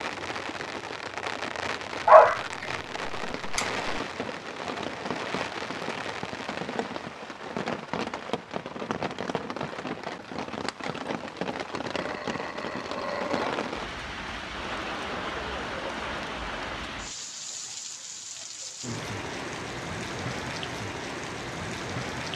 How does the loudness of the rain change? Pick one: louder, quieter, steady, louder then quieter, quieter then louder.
steady.